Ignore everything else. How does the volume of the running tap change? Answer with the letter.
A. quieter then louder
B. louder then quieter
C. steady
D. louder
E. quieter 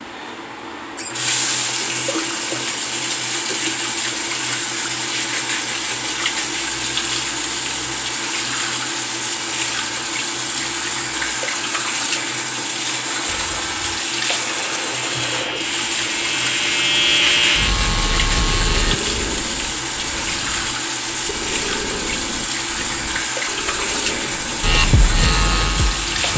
C.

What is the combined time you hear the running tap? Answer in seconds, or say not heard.
26 s.